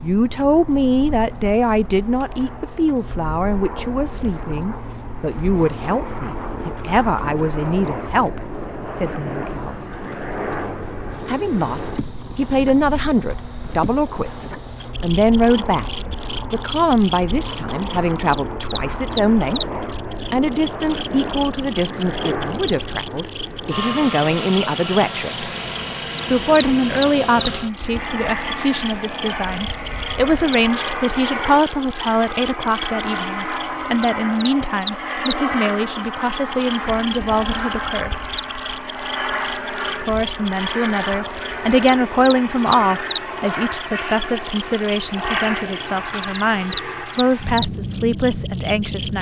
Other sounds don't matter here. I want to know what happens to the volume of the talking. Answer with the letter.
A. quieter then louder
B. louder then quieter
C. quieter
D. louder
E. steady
E.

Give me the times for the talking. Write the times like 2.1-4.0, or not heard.
0.0-9.8, 11.2-15.8, 16.5-19.6, 20.3-25.4, 26.3-38.2, 40.0-49.1.